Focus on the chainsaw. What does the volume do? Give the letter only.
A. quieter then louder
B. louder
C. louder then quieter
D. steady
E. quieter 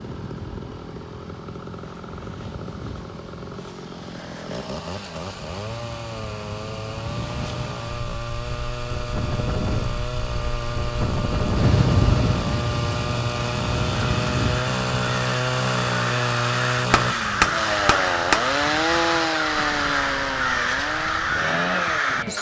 B.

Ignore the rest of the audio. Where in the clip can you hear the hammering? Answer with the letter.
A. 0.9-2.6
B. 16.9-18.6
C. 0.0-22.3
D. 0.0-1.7
B.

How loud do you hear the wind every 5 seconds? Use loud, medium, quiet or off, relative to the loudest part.
quiet, medium, loud, quiet, quiet.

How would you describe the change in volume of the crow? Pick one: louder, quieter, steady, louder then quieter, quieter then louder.
louder.